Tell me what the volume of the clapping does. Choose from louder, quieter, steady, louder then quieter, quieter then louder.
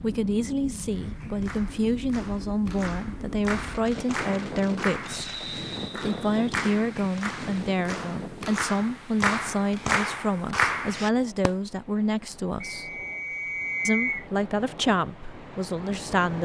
louder.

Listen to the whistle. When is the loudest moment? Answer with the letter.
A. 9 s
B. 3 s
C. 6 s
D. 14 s
D.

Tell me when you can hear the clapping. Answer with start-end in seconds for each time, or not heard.
0.9-11.5.